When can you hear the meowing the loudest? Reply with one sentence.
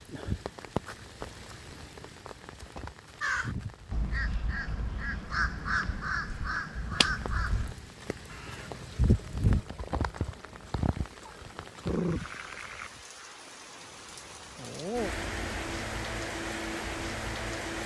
The loudest moment of the meowing is at 11 seconds.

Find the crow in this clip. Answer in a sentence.
The crow can be heard from 3.2 to 10.7 s.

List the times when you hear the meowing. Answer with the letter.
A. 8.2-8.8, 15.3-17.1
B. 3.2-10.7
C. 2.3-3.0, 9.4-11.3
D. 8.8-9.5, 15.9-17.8
C.